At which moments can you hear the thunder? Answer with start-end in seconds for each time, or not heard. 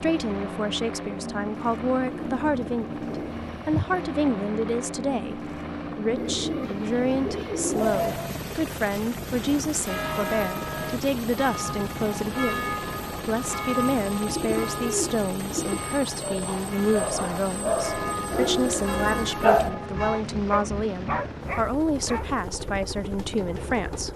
not heard.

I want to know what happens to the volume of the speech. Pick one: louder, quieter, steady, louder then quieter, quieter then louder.
steady.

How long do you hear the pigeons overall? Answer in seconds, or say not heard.
7 s.